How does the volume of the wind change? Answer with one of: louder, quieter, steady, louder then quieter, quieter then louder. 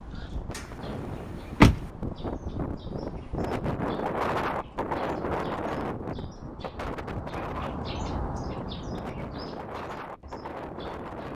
louder then quieter.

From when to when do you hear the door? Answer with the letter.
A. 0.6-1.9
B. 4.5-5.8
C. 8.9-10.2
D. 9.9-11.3
A.